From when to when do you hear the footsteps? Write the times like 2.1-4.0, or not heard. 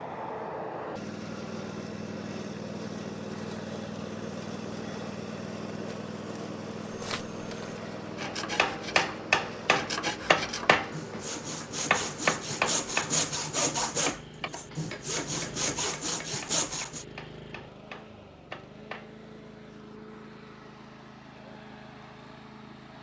not heard.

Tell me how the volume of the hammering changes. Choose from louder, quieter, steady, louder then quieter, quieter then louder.
quieter.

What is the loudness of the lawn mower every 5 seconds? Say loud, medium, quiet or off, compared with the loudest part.
loud, loud, medium, medium, medium.